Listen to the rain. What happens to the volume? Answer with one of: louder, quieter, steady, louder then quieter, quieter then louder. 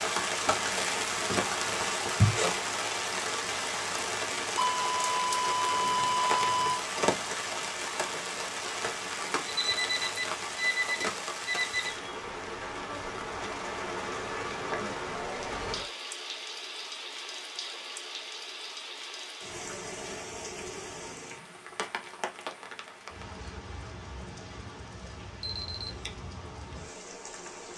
quieter.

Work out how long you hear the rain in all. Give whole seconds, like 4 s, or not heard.
28 s.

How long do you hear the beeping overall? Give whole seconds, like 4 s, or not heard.
5 s.